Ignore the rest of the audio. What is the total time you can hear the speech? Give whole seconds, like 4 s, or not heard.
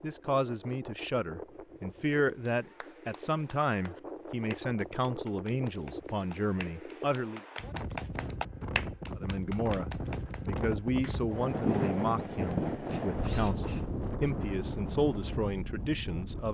15 s.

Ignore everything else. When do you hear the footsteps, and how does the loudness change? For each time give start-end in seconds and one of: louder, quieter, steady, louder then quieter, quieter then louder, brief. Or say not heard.
not heard.